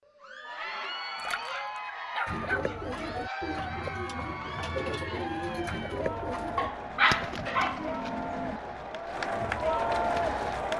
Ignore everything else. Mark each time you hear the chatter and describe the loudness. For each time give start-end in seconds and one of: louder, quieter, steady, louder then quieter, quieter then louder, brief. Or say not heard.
0.1-10.7 louder.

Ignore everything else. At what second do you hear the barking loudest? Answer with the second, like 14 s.
7 s.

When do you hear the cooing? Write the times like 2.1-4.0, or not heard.
2.2-10.6.